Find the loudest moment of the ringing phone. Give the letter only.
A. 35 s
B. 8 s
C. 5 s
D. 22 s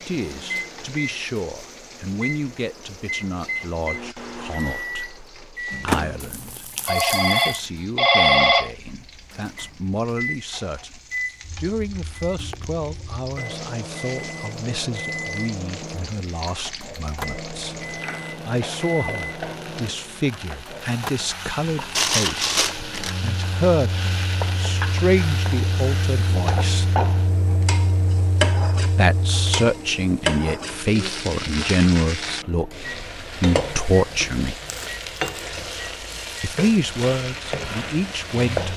B.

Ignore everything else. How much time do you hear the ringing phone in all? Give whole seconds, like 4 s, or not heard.
2 s.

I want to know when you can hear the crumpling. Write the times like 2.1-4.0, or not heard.
6.2-7.6, 21.9-23.1, 34.6-35.5.